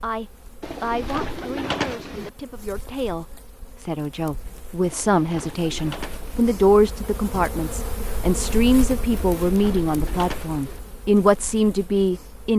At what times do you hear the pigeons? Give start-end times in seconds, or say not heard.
0.6-2.3, 4.8-6.5, 9.1-10.8.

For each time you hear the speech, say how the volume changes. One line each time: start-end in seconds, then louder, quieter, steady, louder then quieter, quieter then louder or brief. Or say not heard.
0.0-12.5 louder.